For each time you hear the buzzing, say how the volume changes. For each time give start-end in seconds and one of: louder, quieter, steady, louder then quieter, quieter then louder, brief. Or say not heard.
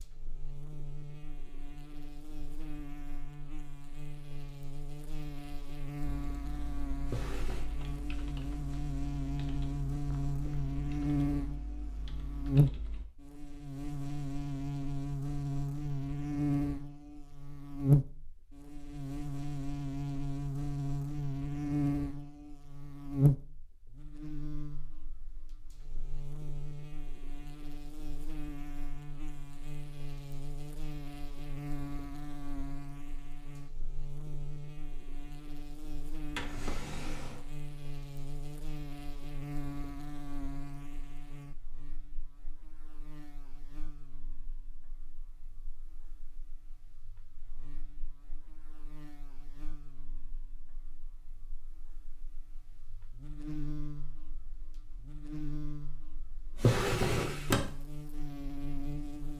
0.0-59.3 louder then quieter.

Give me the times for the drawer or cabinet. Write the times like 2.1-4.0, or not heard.
7.0-7.7, 36.2-37.4, 56.5-57.7.